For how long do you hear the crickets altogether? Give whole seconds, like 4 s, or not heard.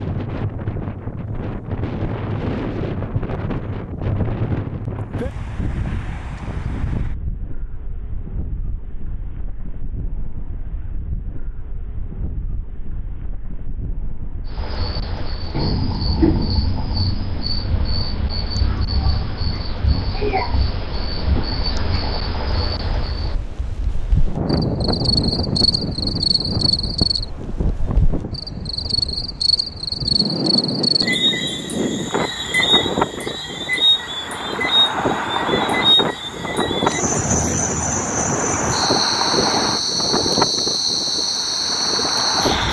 28 s.